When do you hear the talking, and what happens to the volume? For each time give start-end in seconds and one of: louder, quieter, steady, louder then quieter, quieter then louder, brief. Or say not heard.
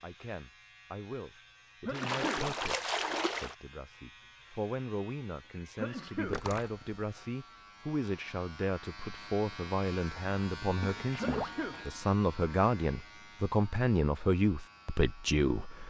0.0-15.8 louder.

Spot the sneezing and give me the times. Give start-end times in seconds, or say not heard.
1.9-2.5, 5.8-6.4, 11.2-11.8.